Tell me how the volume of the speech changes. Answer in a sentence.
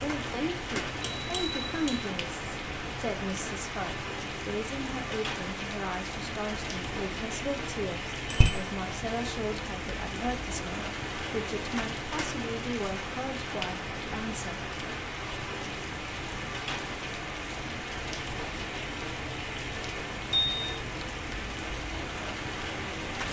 The loudness of the speech stays about the same.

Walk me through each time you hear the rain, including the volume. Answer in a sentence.
The rain can be heard from 0.0 to 23.2 s, at a steady volume.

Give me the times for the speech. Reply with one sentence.
The speech can be heard from 0.0 to 14.6 s.